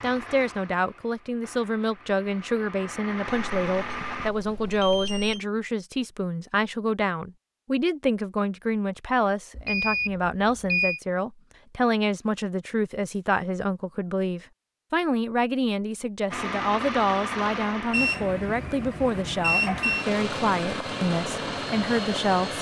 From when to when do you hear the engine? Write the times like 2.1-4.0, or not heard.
0.0-4.3, 16.3-22.5.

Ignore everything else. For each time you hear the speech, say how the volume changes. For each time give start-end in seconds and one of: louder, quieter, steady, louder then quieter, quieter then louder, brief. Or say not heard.
0.0-22.5 steady.